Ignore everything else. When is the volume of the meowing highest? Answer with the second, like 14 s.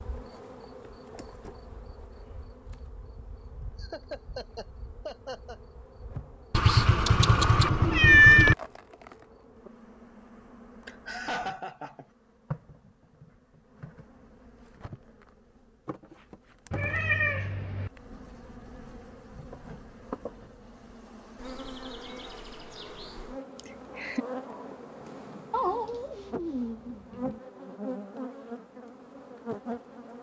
8 s.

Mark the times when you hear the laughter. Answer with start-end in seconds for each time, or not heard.
3.8-5.5, 10.8-12.1, 23.6-24.2.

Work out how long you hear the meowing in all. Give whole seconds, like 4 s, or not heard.
5 s.